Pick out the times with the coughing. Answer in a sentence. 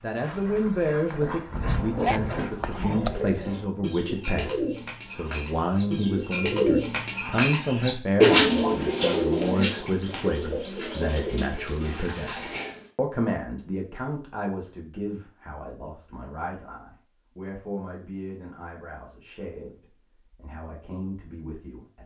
The coughing can be heard from 2.0 to 3.4 s.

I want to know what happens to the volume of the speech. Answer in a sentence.
The volume of the speech goes down.